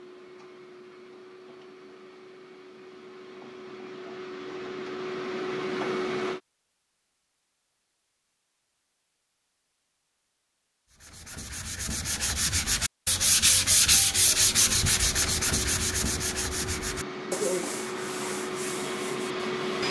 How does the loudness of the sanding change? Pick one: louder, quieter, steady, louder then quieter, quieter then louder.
louder then quieter.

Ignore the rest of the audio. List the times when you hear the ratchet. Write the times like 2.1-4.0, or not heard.
not heard.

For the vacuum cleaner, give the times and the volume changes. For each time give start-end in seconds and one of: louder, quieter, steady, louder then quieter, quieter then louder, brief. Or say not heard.
0.0-6.4 louder
14.1-19.8 louder.